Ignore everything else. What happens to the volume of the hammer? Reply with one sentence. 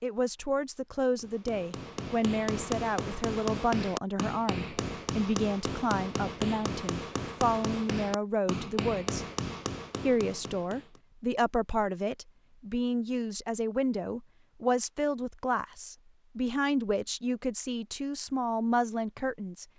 The volume of the hammer stays about the same.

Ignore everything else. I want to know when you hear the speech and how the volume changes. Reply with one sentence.
You can hear the speech from 0.0 to 9.2 s, at a steady volume; and from 10.1 to 19.6 s, at a steady volume.